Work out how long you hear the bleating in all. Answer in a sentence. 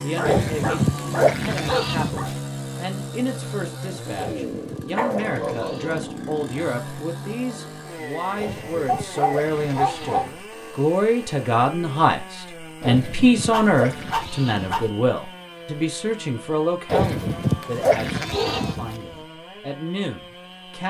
You can hear the bleating for 10 seconds altogether.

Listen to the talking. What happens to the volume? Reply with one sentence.
The volume of the talking goes up, then down.